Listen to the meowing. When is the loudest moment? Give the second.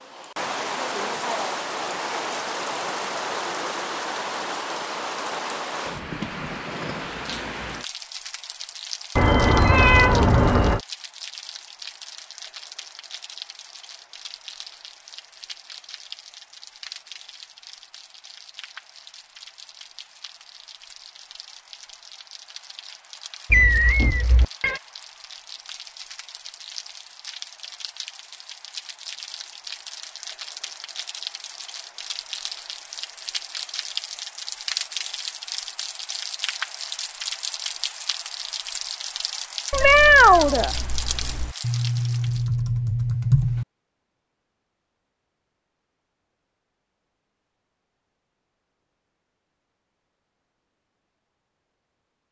40 s.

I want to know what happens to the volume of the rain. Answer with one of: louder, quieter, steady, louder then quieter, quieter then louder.
quieter then louder.